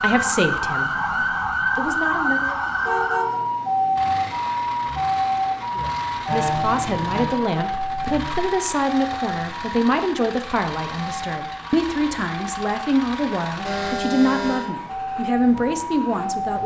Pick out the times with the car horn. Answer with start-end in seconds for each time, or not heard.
2.5-3.4, 6.2-7.2, 13.7-14.7.